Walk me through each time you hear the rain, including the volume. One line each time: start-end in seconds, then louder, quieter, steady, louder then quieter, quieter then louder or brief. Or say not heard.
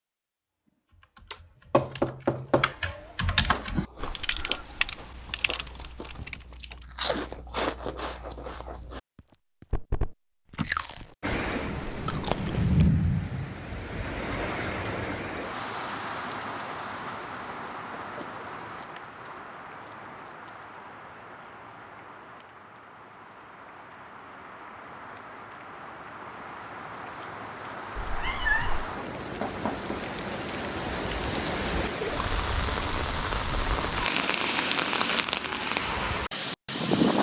11.2-37.1 quieter then louder.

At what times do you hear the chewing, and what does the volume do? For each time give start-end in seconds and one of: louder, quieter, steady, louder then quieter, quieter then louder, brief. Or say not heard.
3.5-12.9 louder.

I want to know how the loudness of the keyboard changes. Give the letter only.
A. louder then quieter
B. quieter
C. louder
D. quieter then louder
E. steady
A.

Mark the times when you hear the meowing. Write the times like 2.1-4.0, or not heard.
27.9-28.9.